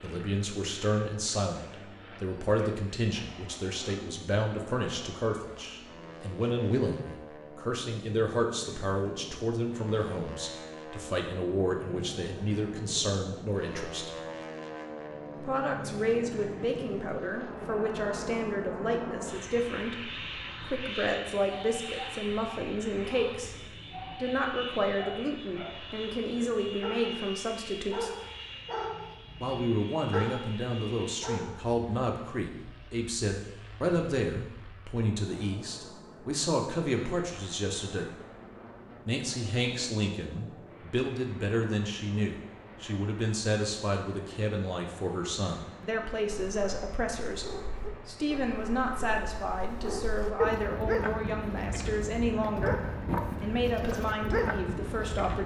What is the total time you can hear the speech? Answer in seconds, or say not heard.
51 s.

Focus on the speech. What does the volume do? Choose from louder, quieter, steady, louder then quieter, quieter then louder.
steady.